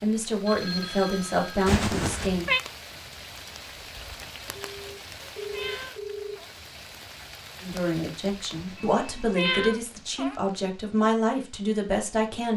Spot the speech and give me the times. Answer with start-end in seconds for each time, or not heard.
0.0-2.5, 7.6-12.5.